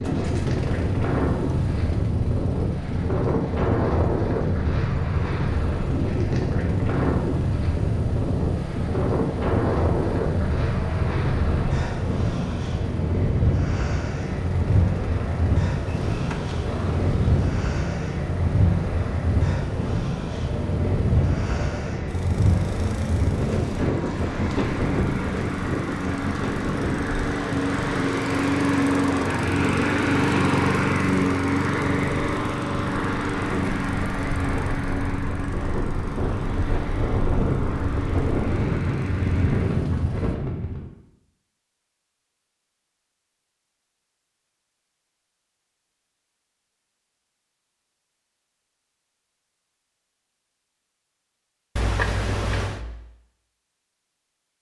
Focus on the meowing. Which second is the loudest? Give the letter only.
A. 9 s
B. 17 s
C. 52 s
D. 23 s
C.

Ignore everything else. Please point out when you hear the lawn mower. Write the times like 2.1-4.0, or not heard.
0.0-40.4.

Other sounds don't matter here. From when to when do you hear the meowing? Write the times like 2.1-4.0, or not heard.
15.8-17.5, 51.8-52.9.